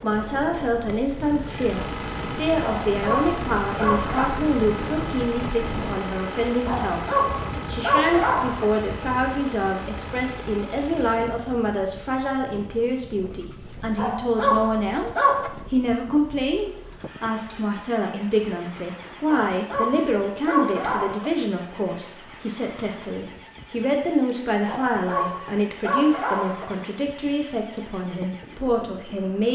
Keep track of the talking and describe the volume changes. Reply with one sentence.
The loudness of the talking stays about the same.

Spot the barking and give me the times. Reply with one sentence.
You can hear the barking from 2.6 to 4.3 s, from 6.7 to 8.7 s, from 13.9 to 15.5 s, from 19.5 to 21.3 s and from 24.6 to 26.6 s.